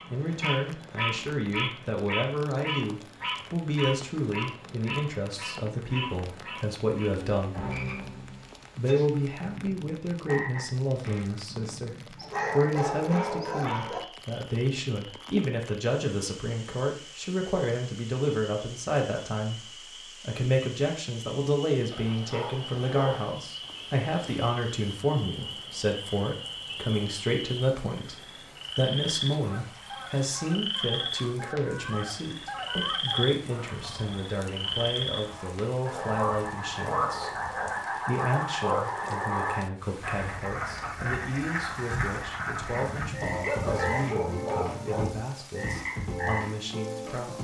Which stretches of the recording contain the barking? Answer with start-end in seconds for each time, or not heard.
12.2-14.0, 21.9-23.3, 42.4-45.1.